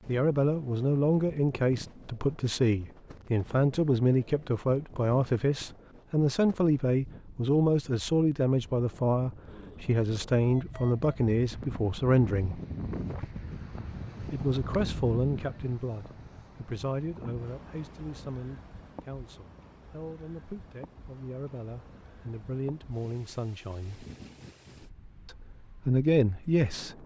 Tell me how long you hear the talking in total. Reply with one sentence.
You can hear the talking for 24 seconds altogether.